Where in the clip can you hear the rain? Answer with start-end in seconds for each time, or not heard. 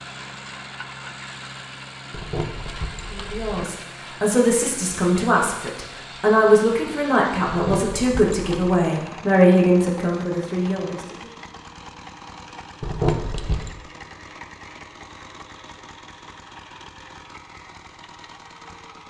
not heard.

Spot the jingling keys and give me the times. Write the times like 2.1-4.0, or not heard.
2.1-3.7, 7.5-8.8, 12.8-13.7.